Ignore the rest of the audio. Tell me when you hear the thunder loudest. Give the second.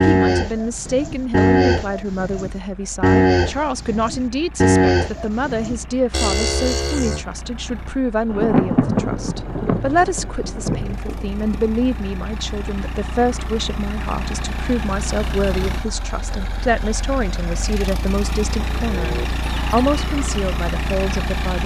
9 s.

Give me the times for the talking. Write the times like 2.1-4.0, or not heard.
0.0-21.6.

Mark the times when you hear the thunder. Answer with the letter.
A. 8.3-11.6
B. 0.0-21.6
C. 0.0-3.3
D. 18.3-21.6
A.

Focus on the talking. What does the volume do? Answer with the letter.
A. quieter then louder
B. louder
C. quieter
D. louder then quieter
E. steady
E.